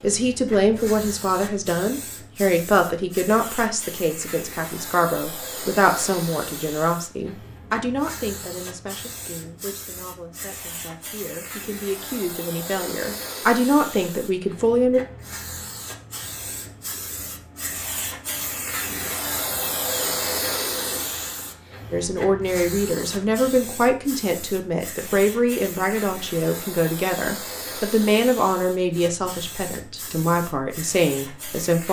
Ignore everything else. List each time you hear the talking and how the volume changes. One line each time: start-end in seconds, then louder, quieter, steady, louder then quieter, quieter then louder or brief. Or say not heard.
0.0-15.0 quieter then louder
21.9-31.8 steady.